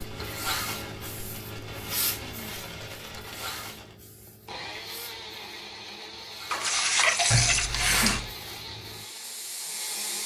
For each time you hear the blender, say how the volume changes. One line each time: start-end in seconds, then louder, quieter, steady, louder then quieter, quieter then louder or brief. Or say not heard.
0.0-10.2 steady.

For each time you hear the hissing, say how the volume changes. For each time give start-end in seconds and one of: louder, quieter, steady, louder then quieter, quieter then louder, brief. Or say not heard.
0.0-10.2 quieter then louder.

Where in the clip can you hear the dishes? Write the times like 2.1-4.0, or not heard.
6.5-8.2.